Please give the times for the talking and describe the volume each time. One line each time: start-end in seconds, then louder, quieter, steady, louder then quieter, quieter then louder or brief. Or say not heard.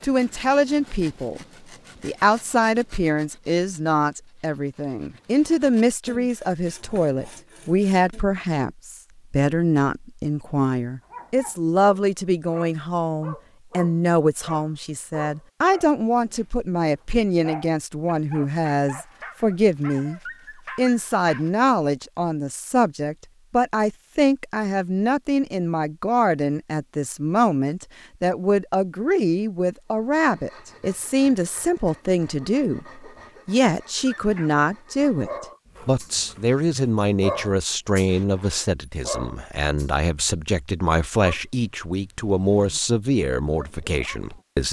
0.0-44.6 steady.